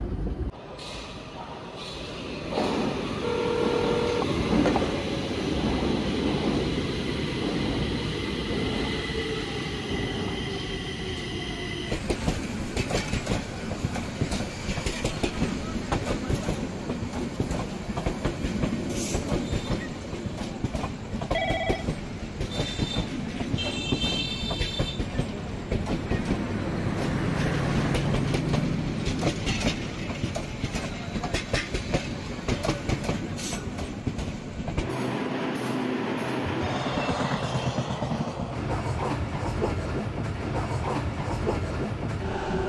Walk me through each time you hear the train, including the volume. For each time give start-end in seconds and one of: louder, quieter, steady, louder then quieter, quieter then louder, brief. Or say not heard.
0.0-42.6 steady.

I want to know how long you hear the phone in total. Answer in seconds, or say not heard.
3 s.